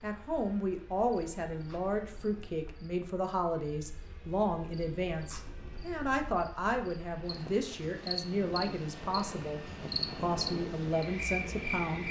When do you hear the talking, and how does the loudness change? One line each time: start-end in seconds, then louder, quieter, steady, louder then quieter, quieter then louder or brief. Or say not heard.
0.0-9.6 steady
10.2-12.0 brief.